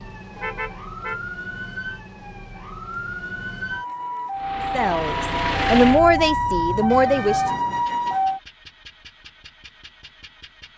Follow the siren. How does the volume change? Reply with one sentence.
The loudness of the siren goes up.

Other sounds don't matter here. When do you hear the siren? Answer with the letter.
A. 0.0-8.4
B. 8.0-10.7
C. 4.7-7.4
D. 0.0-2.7
A.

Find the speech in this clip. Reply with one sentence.
The speech can be heard from 4.7 to 7.4 s.